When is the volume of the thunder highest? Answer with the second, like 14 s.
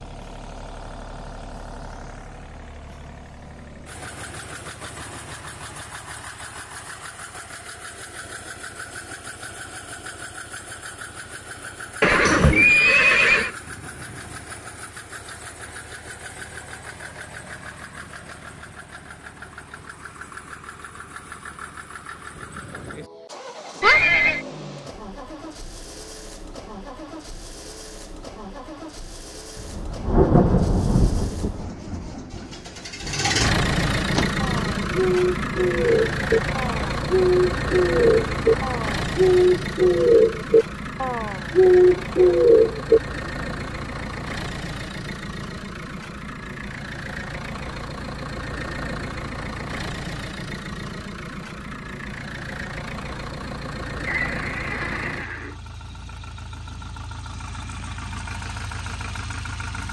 30 s.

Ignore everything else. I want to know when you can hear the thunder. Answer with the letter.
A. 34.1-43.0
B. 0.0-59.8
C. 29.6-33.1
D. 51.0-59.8
C.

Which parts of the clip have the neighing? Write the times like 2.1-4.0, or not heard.
12.0-13.5, 23.8-24.4, 54.0-55.5.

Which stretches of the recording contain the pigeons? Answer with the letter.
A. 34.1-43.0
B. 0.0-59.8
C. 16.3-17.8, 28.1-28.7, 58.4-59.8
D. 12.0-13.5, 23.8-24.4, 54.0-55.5
A.